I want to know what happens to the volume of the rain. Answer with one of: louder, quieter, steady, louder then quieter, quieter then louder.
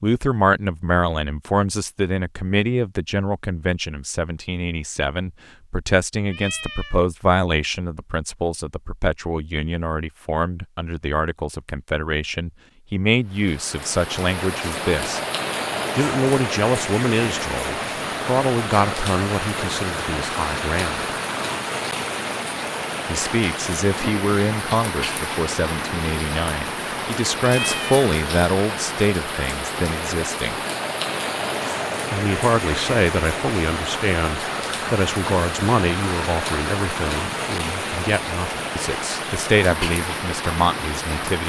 steady.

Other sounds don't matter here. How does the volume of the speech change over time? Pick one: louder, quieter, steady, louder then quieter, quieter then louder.
steady.